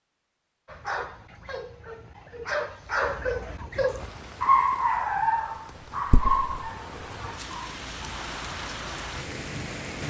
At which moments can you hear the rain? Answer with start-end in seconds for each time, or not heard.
4.0-10.0.